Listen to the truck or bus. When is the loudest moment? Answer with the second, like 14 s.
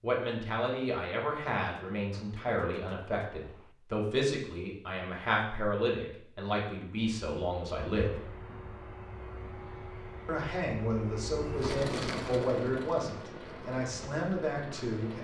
12 s.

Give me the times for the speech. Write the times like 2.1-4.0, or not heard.
0.0-8.2, 10.2-15.1.